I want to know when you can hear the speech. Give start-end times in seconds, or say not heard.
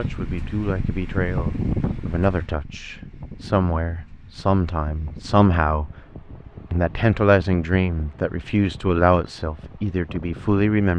0.0-5.9, 6.7-10.9.